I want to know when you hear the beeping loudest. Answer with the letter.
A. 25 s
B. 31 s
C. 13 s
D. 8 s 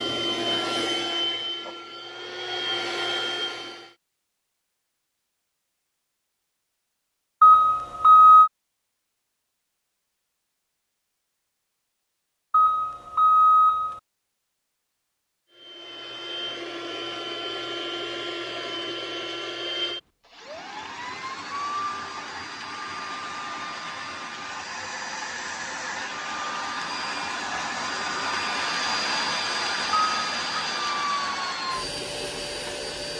D.